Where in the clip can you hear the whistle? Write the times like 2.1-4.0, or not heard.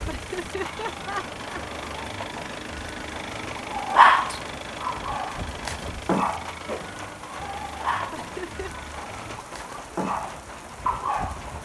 not heard.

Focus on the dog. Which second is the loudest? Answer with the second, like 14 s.
4 s.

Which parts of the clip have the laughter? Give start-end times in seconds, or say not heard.
0.1-1.8, 8.1-8.7.